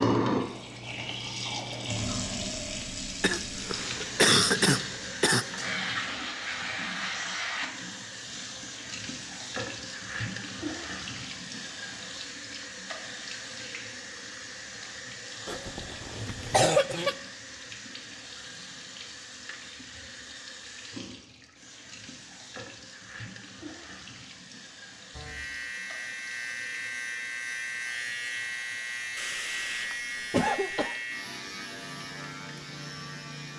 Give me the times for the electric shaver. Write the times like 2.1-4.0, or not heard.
25.1-33.5.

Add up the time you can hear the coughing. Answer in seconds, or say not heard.
6 s.